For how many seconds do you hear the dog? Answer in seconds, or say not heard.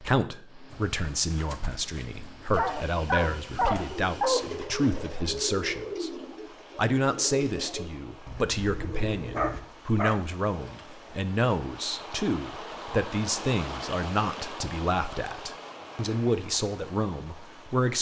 3 s.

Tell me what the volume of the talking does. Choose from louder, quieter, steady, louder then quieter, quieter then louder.
steady.